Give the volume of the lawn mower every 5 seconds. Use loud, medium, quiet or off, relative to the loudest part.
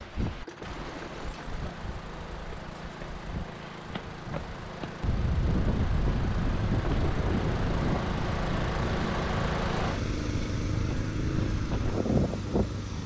medium, loud, loud.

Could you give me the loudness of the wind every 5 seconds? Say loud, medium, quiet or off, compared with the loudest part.
medium, loud, loud.